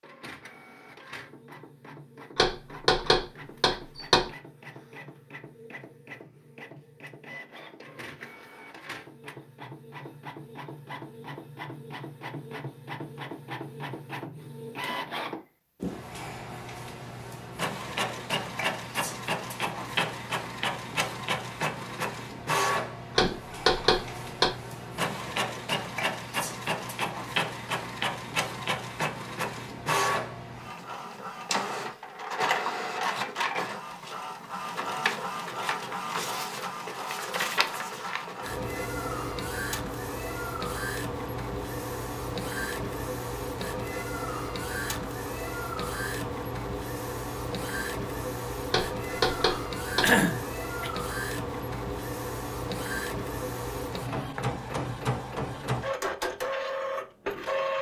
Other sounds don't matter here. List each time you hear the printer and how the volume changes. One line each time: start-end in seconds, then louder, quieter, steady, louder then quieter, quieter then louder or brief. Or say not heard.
0.0-57.7 louder.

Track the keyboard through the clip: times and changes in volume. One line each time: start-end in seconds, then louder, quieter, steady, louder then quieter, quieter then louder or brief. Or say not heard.
not heard.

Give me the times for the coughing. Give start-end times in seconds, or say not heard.
50.0-50.9.